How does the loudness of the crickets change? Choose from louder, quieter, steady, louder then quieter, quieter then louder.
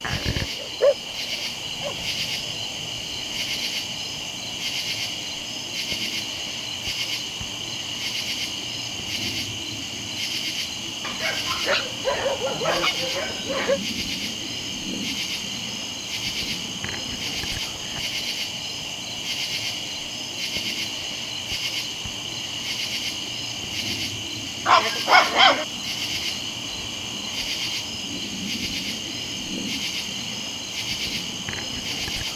steady.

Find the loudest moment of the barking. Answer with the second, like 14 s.
25 s.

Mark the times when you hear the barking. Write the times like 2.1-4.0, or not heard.
0.1-1.9, 11.0-13.8, 24.6-25.6.